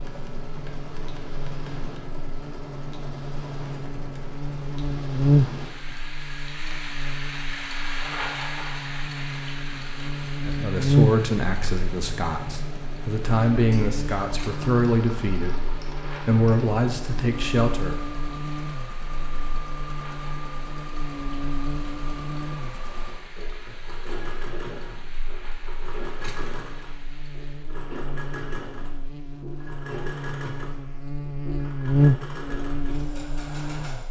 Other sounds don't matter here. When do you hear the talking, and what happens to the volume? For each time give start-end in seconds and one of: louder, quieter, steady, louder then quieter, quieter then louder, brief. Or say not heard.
10.4-17.9 steady.